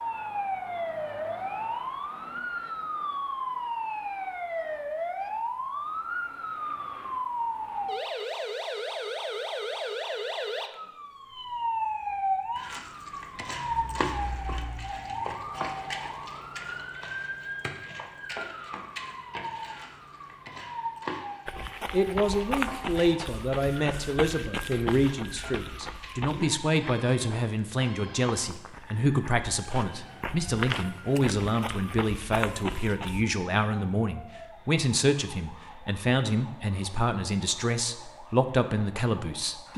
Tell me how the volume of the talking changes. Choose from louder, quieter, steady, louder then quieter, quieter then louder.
steady.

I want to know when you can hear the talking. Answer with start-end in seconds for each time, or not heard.
21.9-39.7.